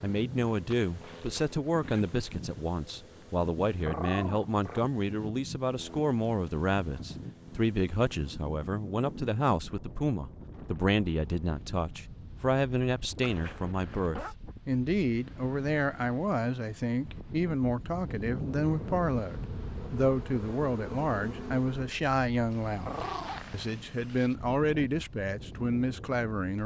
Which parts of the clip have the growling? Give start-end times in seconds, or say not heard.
3.9-4.9, 22.9-23.4.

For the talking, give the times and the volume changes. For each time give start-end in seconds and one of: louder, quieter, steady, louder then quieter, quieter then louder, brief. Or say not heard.
0.0-26.6 steady.